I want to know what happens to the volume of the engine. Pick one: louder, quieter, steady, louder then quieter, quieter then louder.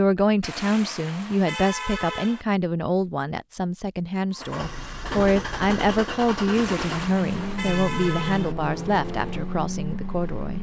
steady.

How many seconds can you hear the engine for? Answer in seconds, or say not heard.
6 s.